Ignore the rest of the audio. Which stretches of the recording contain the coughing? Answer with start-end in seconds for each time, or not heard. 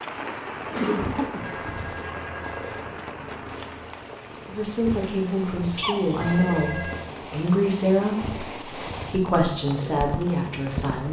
0.7-2.0, 5.8-6.3.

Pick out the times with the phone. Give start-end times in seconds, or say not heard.
1.4-3.0, 6.2-7.1.